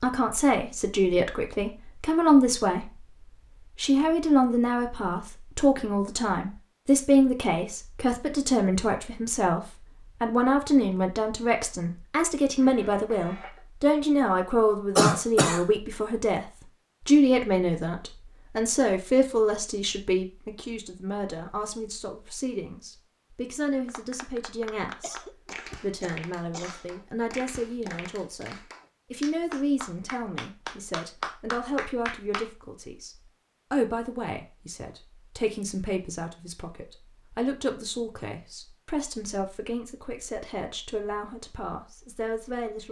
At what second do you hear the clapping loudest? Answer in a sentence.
The loudest moment of the clapping is at 31 seconds.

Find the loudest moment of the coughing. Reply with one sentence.
The loudest moment of the coughing is at 15 seconds.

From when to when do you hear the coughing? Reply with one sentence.
You can hear the coughing from 14.9 to 15.7 s and from 25.0 to 26.9 s.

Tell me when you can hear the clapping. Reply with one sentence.
The clapping can be heard from 23.9 to 32.5 s.